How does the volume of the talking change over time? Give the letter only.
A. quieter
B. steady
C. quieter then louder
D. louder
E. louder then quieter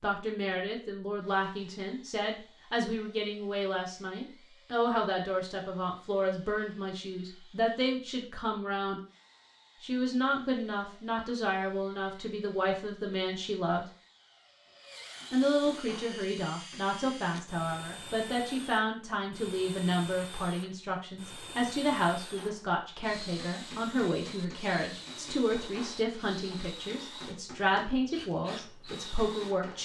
B.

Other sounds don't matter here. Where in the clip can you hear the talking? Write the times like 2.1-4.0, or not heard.
0.0-9.0, 9.8-13.8, 15.3-29.8.